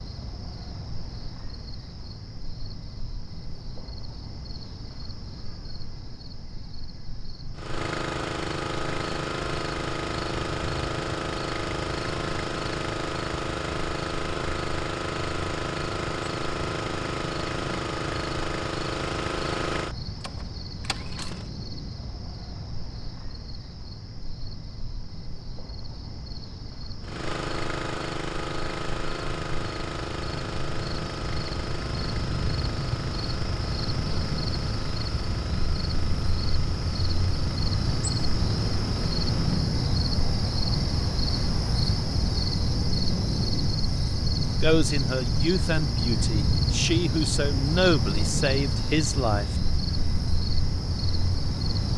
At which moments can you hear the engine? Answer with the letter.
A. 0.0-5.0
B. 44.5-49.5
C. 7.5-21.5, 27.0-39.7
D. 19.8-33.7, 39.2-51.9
C.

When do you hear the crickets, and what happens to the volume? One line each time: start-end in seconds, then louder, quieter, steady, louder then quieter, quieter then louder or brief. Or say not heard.
0.0-51.9 louder.